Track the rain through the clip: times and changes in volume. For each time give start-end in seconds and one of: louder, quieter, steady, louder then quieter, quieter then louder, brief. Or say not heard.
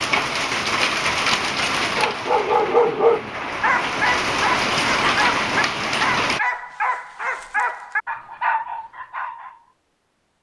0.0-6.4 quieter then louder.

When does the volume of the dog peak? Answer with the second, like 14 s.
3 s.